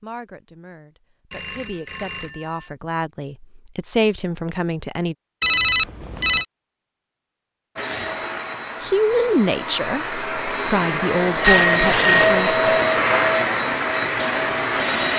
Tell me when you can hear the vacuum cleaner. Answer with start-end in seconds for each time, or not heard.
7.8-15.1.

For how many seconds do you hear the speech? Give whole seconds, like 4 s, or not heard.
9 s.